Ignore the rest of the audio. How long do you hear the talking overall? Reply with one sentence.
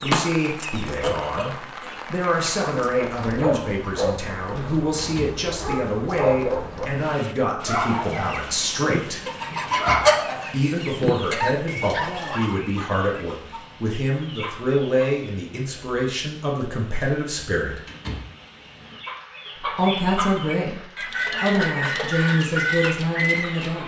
You can hear the talking for 21 seconds altogether.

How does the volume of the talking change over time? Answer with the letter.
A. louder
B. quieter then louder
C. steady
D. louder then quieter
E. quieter
C.